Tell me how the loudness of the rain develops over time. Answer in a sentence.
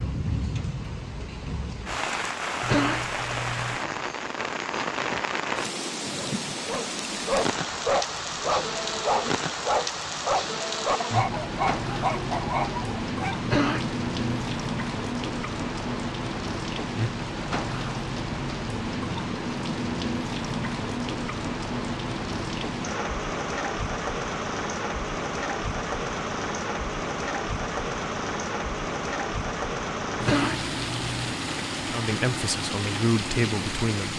The loudness of the rain stays about the same.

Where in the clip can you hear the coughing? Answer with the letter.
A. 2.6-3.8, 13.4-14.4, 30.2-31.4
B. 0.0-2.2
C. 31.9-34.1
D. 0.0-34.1
A.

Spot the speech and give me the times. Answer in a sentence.
You can hear the speech from 31.9 to 34.1 s.